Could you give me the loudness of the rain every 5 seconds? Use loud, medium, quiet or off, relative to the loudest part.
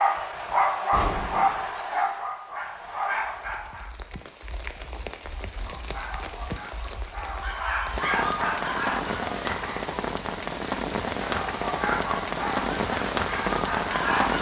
quiet, medium, loud.